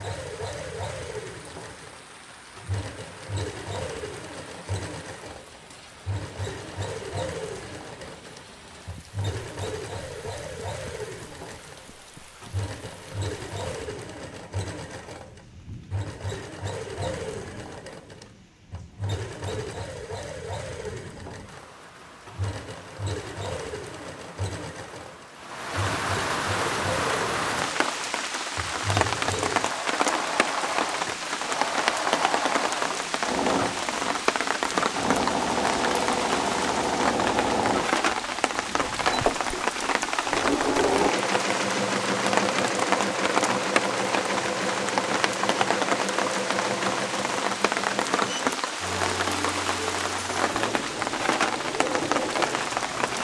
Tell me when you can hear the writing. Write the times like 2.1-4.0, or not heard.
not heard.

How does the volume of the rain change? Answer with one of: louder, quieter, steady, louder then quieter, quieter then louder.
louder.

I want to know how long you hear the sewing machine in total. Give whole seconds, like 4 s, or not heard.
53 s.